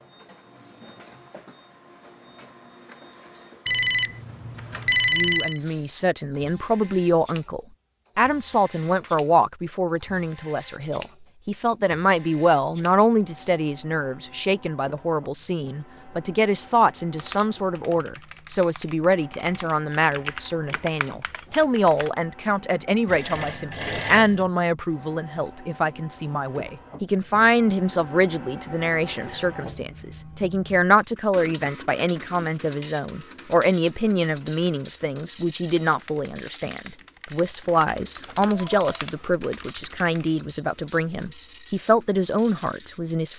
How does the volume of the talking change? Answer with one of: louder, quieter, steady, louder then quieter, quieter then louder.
steady.